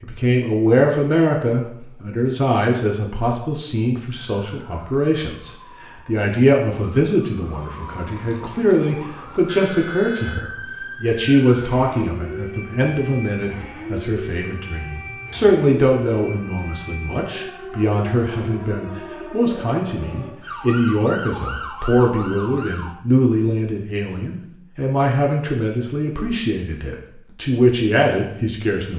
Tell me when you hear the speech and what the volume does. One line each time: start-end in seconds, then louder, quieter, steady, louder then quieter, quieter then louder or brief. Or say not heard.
0.0-28.9 steady.